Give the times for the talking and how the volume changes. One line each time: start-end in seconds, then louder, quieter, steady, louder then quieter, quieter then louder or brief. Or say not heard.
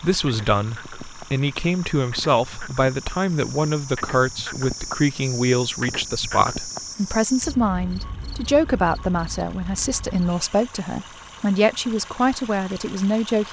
0.0-13.4 steady.